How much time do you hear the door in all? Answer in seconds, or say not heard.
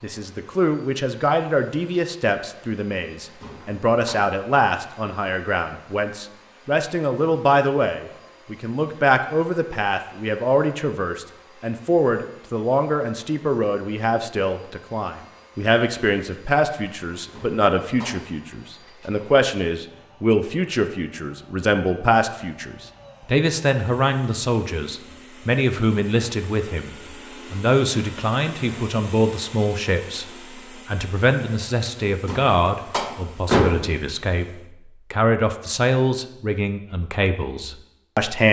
3 s.